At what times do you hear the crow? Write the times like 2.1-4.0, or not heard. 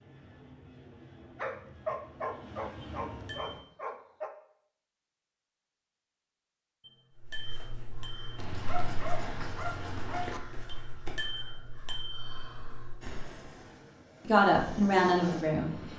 7.2-13.3.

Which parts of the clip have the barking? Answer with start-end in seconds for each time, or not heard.
1.4-4.3, 8.3-10.4.